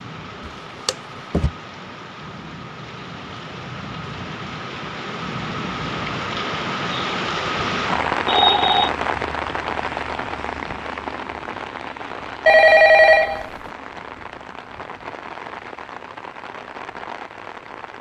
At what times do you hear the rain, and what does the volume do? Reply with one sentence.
The rain can be heard from 0.0 to 17.9 s, getting louder then quieter.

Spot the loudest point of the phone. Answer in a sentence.
The loudest moment of the phone is at 13 seconds.